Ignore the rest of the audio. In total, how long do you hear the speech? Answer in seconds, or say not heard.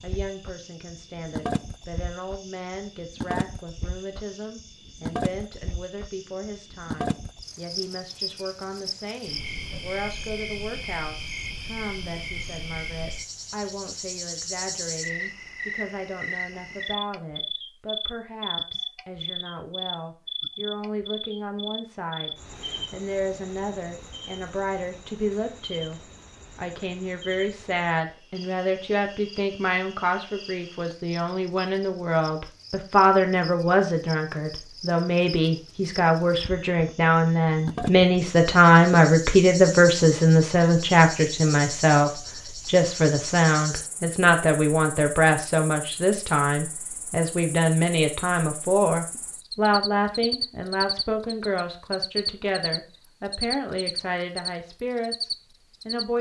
56 s.